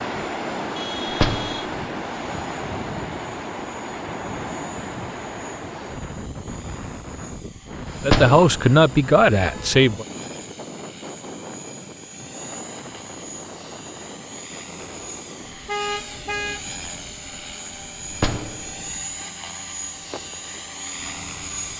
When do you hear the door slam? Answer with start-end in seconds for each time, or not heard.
1.1-1.6, 8.0-8.6, 18.1-18.7.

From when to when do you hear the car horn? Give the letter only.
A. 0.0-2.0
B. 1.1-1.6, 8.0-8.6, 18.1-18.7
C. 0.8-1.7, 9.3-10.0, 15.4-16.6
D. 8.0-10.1
C.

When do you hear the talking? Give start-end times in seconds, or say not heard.
8.0-10.1.